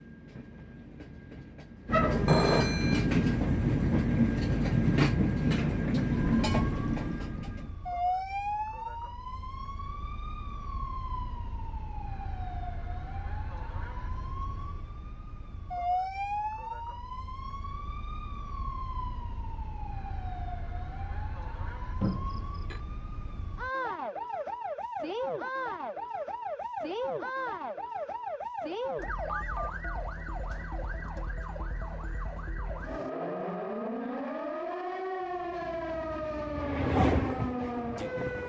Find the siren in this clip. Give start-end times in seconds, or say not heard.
6.1-38.4.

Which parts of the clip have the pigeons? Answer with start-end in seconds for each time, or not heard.
not heard.